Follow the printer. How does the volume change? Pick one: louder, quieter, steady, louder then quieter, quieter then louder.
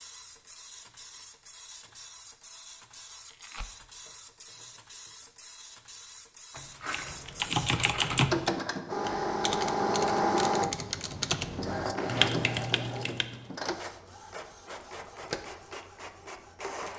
louder then quieter.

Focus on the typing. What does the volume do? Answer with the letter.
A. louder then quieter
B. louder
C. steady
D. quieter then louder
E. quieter
D.